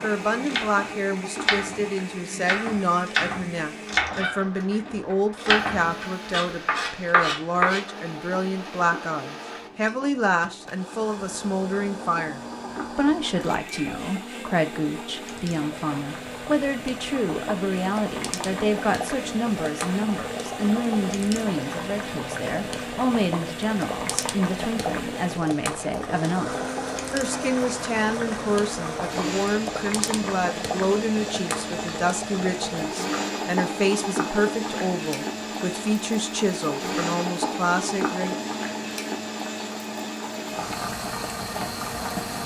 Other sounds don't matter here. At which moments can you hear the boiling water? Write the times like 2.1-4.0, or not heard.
0.0-42.4.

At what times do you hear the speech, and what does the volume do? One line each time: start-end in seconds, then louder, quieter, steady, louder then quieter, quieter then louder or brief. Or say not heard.
0.0-38.4 steady.